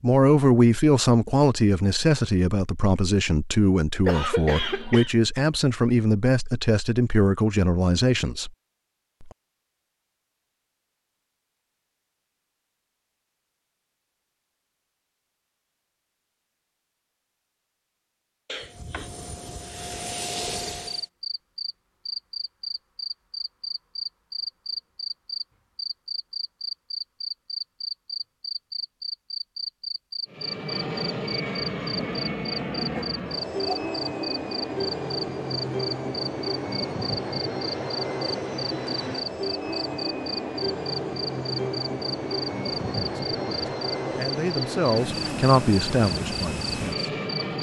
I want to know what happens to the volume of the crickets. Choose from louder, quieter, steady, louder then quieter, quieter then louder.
steady.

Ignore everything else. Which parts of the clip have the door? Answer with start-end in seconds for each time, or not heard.
not heard.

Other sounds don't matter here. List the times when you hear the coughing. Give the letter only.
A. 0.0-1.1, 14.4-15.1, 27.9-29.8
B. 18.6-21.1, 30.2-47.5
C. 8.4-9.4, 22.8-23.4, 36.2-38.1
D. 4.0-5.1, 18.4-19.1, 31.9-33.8
D.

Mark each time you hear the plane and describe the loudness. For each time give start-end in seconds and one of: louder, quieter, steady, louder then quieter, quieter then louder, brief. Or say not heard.
18.6-21.1 brief
30.2-47.5 steady.